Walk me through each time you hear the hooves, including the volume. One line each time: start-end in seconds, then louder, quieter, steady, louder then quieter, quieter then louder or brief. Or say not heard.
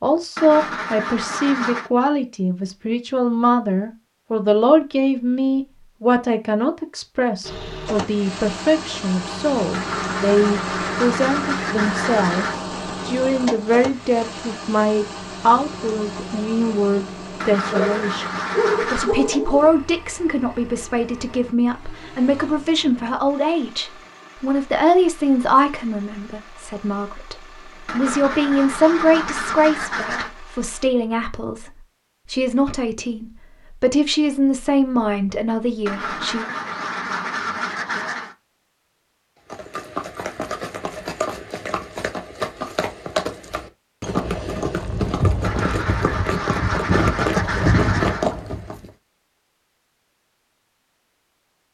39.5-48.9 louder.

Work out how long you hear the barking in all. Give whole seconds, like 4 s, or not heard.
2 s.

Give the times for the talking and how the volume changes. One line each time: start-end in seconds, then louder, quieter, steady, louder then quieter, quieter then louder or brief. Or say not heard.
0.0-36.5 steady.